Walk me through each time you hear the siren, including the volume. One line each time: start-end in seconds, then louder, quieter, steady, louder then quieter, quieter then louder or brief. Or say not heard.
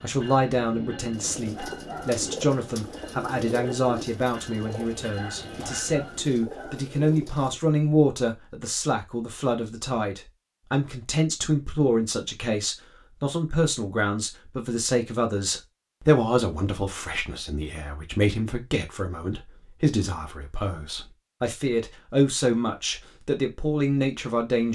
not heard.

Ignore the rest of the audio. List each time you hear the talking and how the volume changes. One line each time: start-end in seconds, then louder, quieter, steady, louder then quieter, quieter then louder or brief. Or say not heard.
0.0-24.7 steady.